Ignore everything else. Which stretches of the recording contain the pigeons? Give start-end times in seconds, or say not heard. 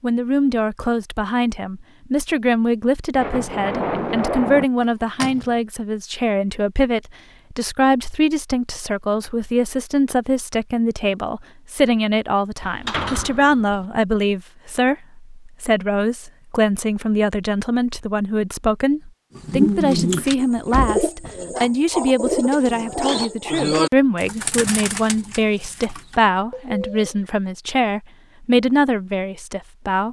19.4-27.2.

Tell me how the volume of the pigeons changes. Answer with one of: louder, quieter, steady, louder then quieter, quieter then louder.
quieter.